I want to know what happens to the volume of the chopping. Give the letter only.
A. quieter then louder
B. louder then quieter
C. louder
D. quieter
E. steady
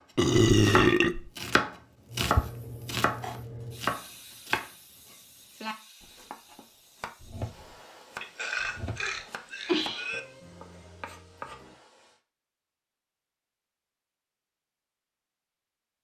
D.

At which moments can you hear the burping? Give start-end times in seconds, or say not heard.
0.1-1.3, 8.2-10.2.